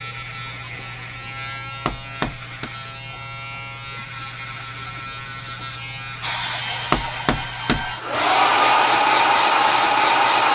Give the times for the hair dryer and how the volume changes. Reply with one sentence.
The hair dryer can be heard from 6.2 to 10.4 s, getting louder.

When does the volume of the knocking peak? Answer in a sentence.
The volume of the knocking peaks at 7 seconds.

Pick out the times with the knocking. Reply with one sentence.
The knocking can be heard from 1.9 to 2.7 s and from 6.9 to 7.9 s.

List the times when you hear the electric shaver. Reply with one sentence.
The electric shaver can be heard from 0.0 to 10.4 s.